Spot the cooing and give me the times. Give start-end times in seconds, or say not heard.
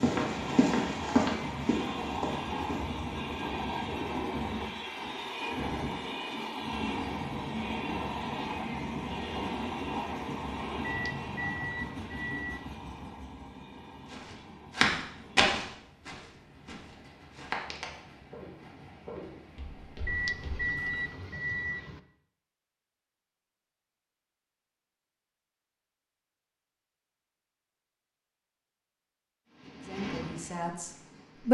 not heard.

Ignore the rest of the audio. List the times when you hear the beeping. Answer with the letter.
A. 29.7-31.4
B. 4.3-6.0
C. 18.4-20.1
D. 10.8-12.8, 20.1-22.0
D.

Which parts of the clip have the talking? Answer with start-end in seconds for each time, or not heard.
29.7-31.4.